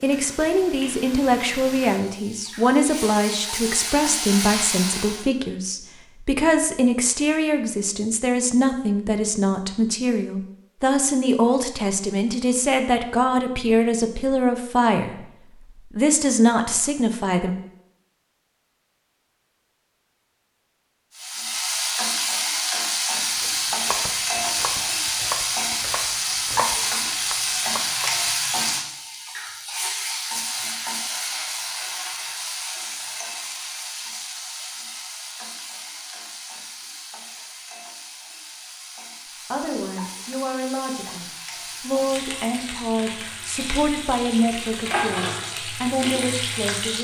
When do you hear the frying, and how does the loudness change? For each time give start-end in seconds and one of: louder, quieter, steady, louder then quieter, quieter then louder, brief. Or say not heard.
0.0-5.2 louder
21.1-46.9 quieter then louder.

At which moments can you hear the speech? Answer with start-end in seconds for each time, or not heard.
0.0-17.6, 39.5-46.9.